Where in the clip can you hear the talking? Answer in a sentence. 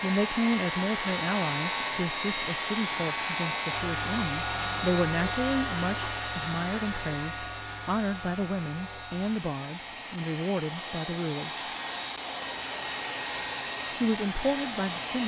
You can hear the talking from 0.0 to 11.6 s and from 14.0 to 15.2 s.